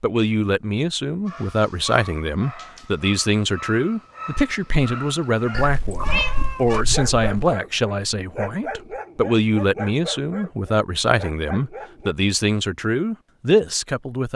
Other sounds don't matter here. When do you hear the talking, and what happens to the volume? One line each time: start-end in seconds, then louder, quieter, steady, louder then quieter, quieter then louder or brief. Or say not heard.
0.0-14.3 steady.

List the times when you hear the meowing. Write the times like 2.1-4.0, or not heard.
5.5-7.5.